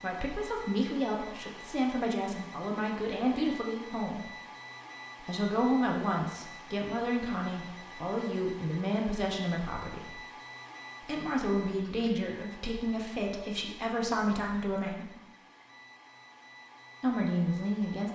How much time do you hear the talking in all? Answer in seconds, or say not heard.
14 s.